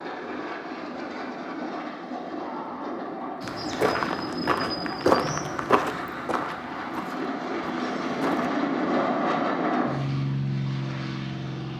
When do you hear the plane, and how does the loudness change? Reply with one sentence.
You can hear the plane from 0.0 to 11.7 s, getting louder.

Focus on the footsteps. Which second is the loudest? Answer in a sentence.
The loudest moment of the footsteps is at 5 seconds.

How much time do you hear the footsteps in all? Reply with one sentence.
You can hear the footsteps for 5 seconds altogether.